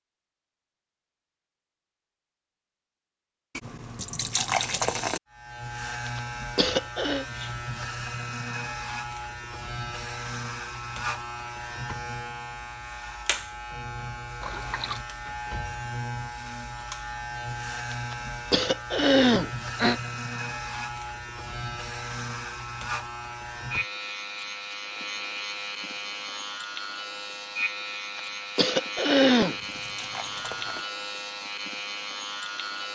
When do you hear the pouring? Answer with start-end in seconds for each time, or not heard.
3.5-5.2, 14.4-15.0, 29.4-30.9.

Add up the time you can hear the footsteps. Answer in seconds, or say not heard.
not heard.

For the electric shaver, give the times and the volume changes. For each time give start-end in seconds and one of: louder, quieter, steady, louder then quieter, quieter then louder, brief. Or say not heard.
5.3-32.9 steady.